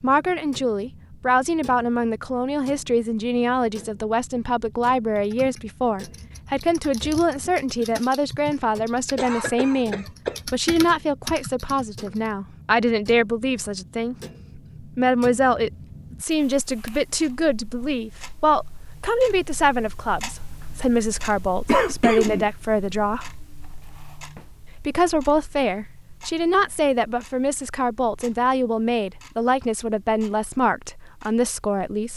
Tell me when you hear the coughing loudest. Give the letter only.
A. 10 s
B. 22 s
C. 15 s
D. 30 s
B.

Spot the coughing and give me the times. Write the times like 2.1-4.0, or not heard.
9.2-10.3, 21.6-22.4.